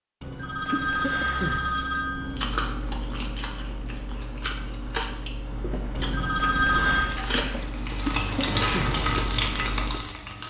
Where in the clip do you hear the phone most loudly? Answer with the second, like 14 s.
7 s.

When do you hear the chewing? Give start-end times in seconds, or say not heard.
2.2-10.0.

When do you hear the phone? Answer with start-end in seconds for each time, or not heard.
0.2-2.5, 6.0-7.2.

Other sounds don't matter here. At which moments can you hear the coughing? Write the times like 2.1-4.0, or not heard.
0.7-1.6, 8.1-8.9.